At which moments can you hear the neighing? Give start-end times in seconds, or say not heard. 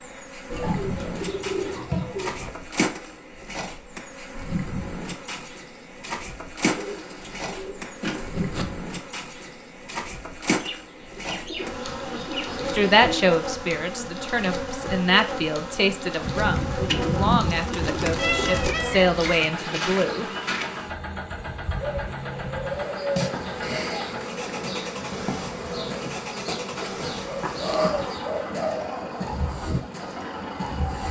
not heard.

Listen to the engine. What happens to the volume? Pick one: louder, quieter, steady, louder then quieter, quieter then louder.
steady.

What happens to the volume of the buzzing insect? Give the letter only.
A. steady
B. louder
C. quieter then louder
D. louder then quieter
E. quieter
A.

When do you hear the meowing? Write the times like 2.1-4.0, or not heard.
18.1-19.4.